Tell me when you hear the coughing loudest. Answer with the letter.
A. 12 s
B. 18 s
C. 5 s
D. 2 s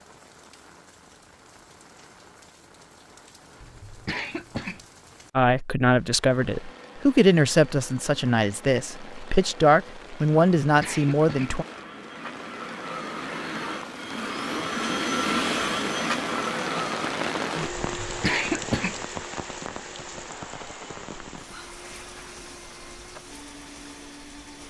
B.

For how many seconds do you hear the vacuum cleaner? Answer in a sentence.
You can hear the vacuum cleaner for 18 seconds altogether.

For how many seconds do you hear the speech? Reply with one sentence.
The speech can be heard for 6 seconds in total.